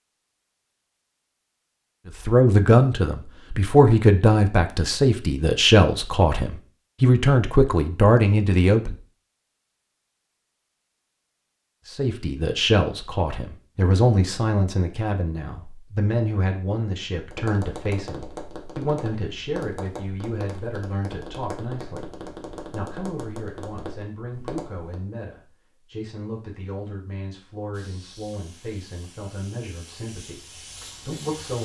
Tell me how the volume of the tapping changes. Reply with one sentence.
The loudness of the tapping stays about the same.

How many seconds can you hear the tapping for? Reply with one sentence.
The tapping can be heard for 8 seconds in total.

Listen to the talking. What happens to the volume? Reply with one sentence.
The volume of the talking goes down.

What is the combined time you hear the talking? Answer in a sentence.
You can hear the talking for 27 seconds altogether.